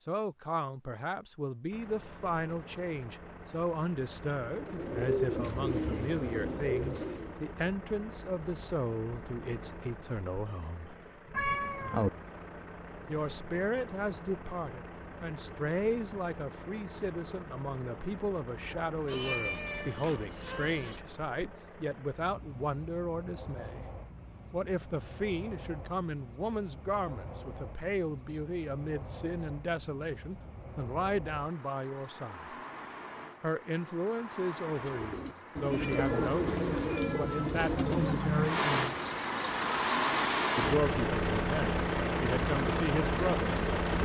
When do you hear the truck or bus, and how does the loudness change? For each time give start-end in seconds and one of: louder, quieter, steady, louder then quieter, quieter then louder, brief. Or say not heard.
1.7-44.0 louder.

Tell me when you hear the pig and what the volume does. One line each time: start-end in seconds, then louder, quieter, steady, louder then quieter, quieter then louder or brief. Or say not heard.
not heard.